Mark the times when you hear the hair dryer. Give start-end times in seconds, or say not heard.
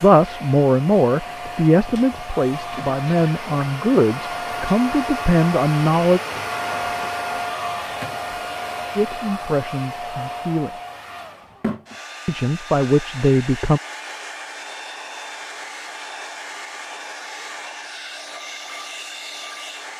0.0-19.9.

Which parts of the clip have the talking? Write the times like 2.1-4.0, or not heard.
0.0-6.2, 8.9-10.7, 12.2-13.8.